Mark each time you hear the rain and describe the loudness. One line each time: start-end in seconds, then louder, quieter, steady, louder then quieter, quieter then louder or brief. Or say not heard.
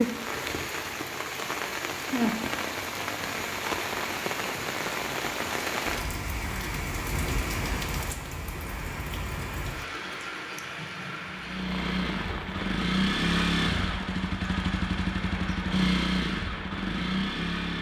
0.0-17.7 quieter.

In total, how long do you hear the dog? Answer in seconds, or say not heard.
not heard.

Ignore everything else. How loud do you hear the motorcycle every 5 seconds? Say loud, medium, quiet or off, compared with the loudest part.
off, off, loud, loud.